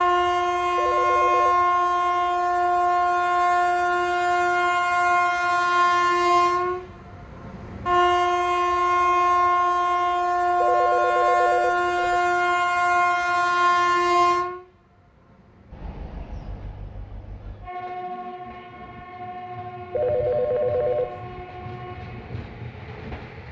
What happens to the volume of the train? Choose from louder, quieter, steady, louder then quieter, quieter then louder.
quieter.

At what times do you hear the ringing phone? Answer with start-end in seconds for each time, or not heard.
0.8-1.6, 10.6-12.2, 19.9-21.2.